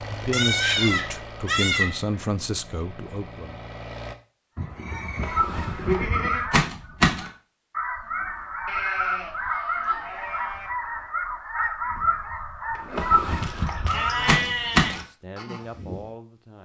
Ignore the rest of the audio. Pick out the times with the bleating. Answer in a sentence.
You can hear the bleating from 0.3 to 2.0 s, from 4.5 to 6.5 s, from 8.7 to 10.7 s and from 13.4 to 15.1 s.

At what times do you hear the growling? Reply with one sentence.
The growling can't be heard in this clip.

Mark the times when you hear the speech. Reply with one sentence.
The speech can be heard from 0.1 to 3.6 s and from 13.8 to 16.6 s.